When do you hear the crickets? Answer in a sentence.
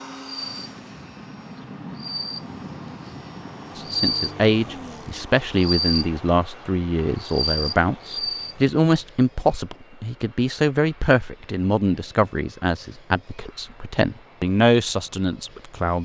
You can hear the crickets from 0.1 to 8.6 s.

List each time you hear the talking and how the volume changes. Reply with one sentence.
The talking can be heard from 3.8 to 15.9 s, at a steady volume.